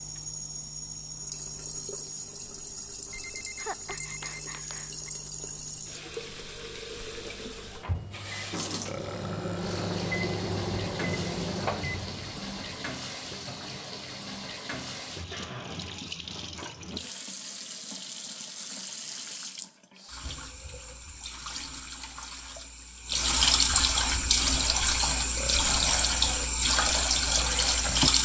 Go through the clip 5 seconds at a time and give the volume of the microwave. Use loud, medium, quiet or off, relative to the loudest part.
quiet, medium, loud, off, off, off.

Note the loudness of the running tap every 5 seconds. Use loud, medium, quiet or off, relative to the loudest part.
quiet, quiet, quiet, quiet, loud, loud.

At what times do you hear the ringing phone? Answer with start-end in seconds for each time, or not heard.
3.1-5.1.